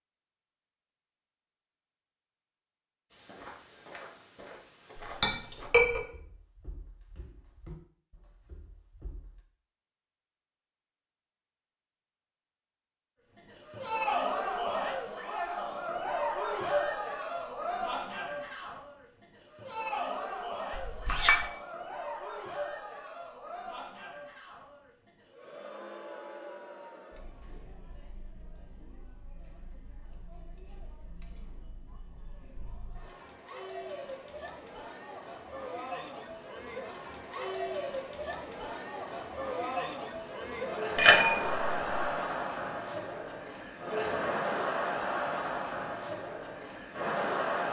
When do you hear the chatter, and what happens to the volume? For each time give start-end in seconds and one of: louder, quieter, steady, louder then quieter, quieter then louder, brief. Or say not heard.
13.3-47.6 quieter then louder.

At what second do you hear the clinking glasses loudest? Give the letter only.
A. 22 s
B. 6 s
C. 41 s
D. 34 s
C.